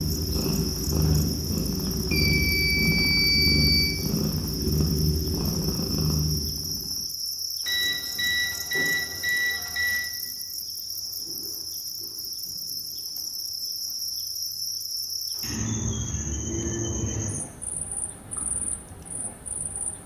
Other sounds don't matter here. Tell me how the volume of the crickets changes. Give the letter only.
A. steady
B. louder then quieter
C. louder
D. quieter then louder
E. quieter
A.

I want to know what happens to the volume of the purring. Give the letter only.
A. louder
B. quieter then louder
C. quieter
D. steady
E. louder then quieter
D.